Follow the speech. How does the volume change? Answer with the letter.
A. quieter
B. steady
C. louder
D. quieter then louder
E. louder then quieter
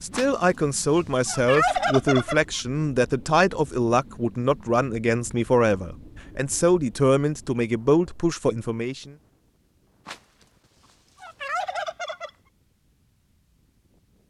B.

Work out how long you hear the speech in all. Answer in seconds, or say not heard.
9 s.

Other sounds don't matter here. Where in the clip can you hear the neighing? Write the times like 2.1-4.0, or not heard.
not heard.